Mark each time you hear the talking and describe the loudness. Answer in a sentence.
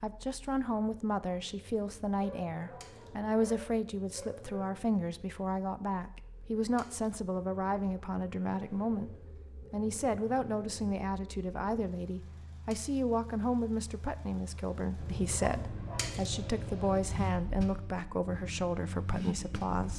You can hear the talking from 0.0 to 19.9 s, at a steady volume.